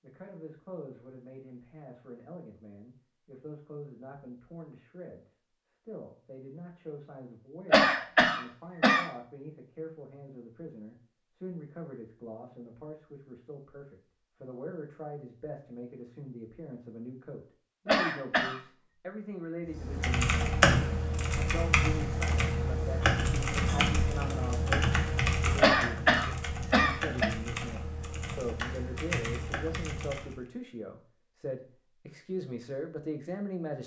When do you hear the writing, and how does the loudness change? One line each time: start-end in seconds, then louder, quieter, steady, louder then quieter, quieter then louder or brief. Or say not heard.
not heard.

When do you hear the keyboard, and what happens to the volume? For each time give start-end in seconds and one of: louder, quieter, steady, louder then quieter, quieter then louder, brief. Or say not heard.
19.6-30.4 quieter.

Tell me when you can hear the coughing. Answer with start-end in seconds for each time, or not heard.
7.7-9.1, 17.9-18.6, 25.6-27.3.